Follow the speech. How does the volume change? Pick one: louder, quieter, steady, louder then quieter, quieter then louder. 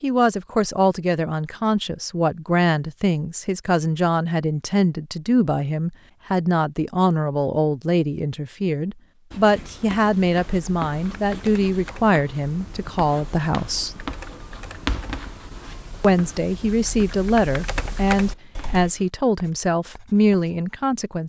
steady.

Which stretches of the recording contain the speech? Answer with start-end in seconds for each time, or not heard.
0.0-14.0, 16.0-21.2.